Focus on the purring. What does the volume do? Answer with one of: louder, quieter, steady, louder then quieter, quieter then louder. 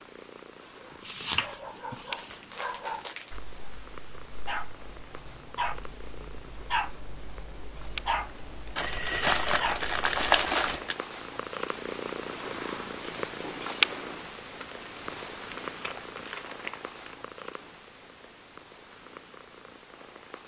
louder then quieter.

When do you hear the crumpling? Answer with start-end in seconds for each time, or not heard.
2.1-3.4, 8.8-10.9, 14.6-17.1.